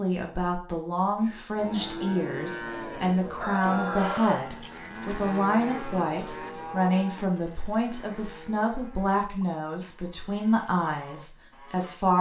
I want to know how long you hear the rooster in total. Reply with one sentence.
You can hear the rooster for 2 seconds altogether.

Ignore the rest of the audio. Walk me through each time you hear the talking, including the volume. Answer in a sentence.
The talking can be heard from 0.0 to 12.1 s, at a steady volume.